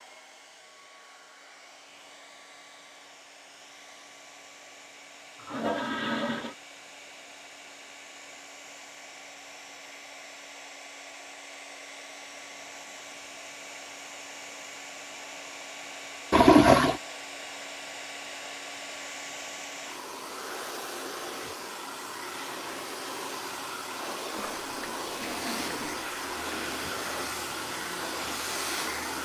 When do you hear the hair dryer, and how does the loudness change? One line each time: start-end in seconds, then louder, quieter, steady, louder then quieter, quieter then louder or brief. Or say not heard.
0.0-29.1 louder.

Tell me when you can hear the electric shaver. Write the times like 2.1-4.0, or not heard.
not heard.